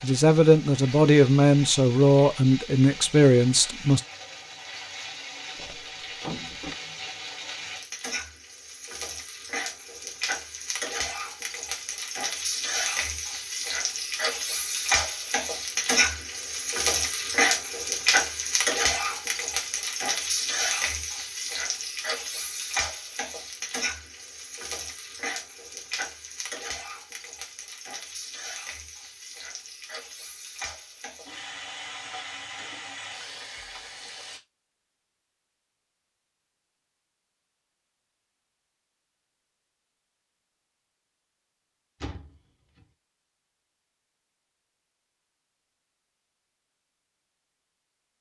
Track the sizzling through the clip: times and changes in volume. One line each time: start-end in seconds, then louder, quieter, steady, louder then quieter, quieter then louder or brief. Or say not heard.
0.0-34.4 louder then quieter.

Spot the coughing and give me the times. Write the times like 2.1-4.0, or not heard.
not heard.